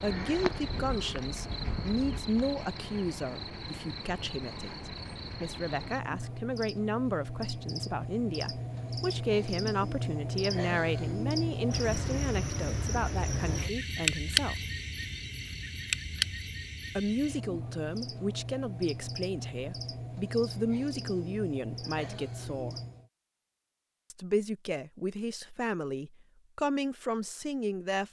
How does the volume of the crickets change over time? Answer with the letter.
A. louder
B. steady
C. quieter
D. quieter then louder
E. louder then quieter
E.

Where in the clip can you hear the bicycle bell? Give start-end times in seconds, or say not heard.
not heard.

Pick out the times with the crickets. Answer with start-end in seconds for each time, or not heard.
0.0-23.1.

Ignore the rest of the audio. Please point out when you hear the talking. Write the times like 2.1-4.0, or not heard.
0.0-14.6, 16.9-22.8, 24.1-28.0.